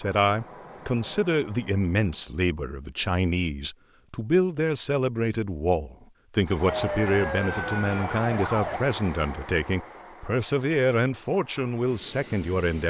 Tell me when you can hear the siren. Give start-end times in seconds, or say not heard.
6.7-8.8.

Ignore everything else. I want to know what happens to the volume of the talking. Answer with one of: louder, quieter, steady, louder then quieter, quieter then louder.
steady.